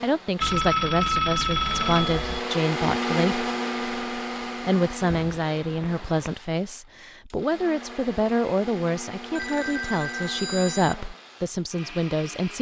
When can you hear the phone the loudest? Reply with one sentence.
The volume of the phone peaks at 1 second.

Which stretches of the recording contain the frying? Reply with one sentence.
The frying can't be heard in this clip.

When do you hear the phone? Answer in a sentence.
You can hear the phone from 0.4 to 2.4 s, from 5.1 to 6.3 s and from 9.3 to 10.9 s.